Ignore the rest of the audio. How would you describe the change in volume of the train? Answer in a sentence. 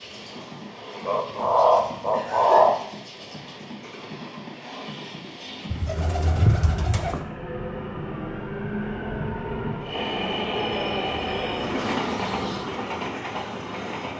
The loudness of the train goes up.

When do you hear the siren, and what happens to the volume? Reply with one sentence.
The siren can't be heard in this clip.